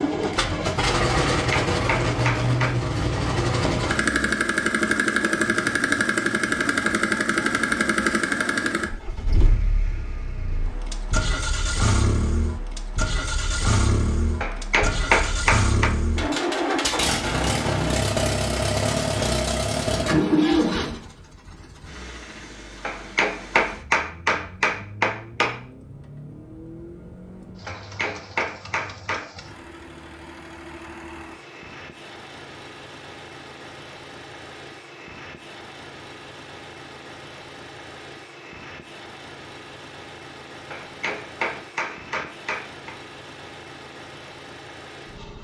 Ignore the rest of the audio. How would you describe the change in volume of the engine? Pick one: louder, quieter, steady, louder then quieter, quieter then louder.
quieter.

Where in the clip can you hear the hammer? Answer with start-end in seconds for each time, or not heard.
1.4-2.8, 14.4-15.9, 22.8-25.6, 27.6-29.2, 40.7-43.0.